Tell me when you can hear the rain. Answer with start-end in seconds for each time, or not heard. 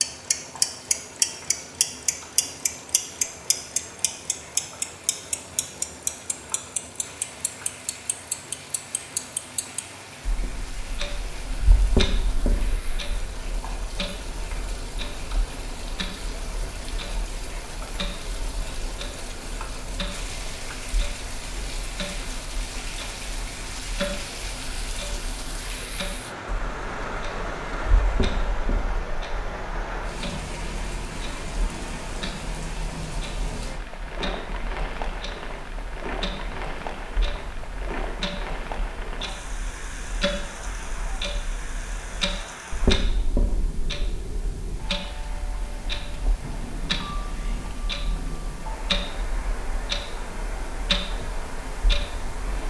0.0-52.6.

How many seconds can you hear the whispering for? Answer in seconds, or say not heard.
not heard.